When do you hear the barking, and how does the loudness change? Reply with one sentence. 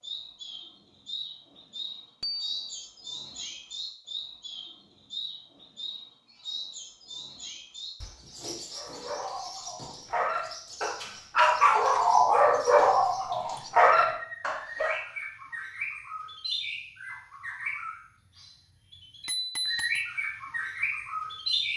The barking can be heard from 8.8 to 15.0 s, getting louder.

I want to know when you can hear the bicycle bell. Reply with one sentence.
You can hear the bicycle bell from 2.2 to 2.9 s and from 19.2 to 20.1 s.